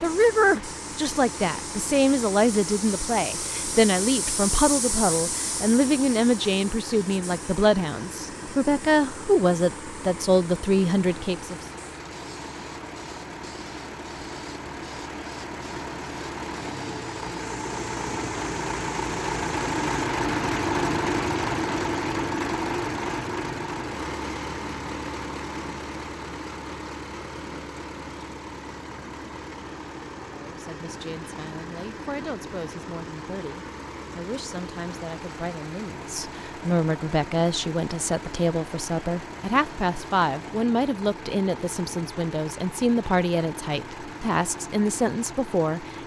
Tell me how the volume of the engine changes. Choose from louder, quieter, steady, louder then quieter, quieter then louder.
louder then quieter.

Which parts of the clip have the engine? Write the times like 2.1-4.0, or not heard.
0.0-46.0.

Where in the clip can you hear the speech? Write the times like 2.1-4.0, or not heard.
0.0-11.6, 30.3-46.0.